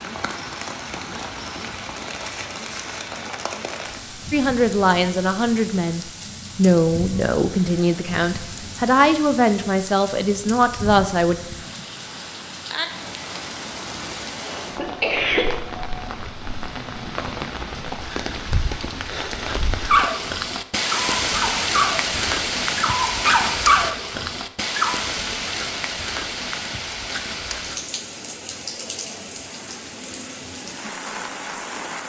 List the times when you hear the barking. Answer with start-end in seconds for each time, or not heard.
19.9-24.9.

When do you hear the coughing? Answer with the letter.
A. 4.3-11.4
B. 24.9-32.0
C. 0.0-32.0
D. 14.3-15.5
D.